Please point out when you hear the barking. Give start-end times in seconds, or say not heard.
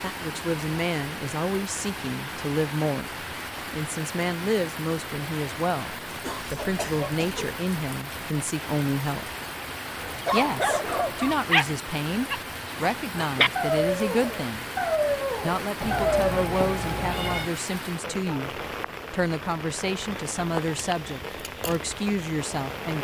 10.0-16.4.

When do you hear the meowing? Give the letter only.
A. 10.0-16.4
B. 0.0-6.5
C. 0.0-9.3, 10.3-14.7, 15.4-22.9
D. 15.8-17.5
D.